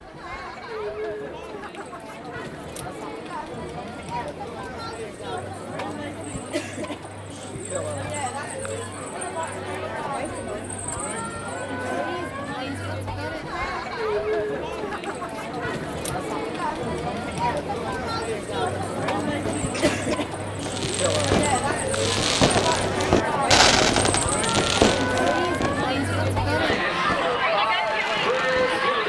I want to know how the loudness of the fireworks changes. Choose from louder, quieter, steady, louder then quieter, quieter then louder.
louder then quieter.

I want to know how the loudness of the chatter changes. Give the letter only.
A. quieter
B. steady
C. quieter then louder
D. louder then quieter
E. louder
E.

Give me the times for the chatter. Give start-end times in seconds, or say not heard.
0.0-29.0.